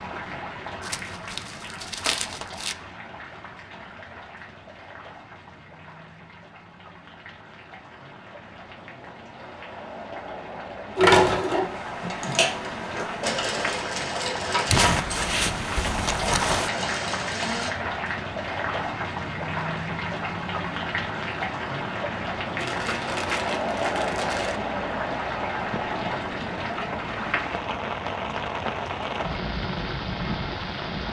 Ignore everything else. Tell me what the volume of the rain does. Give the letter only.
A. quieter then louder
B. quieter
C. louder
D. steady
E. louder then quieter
C.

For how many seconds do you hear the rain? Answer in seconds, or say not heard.
31 s.